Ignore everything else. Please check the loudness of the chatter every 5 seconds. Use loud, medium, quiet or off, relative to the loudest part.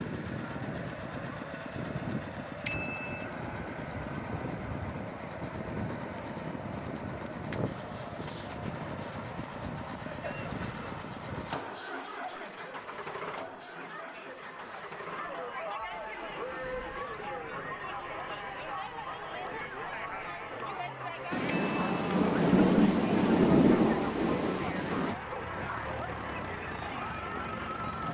medium, medium, medium, loud, loud, loud.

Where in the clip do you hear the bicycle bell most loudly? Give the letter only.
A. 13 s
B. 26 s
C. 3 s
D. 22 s
C.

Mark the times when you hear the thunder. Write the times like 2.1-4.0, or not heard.
21.3-25.1.